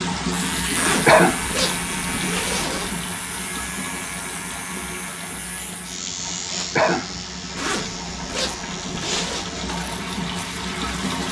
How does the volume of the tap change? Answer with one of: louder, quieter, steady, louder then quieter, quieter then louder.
quieter then louder.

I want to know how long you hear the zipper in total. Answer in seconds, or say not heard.
4 s.